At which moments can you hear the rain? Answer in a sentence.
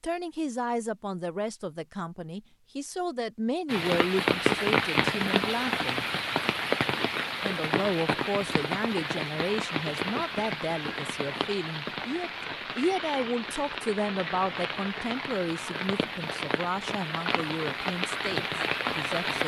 The rain can be heard from 3.6 to 19.4 s.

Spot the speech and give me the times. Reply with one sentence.
You can hear the speech from 0.0 to 6.0 s and from 7.4 to 19.4 s.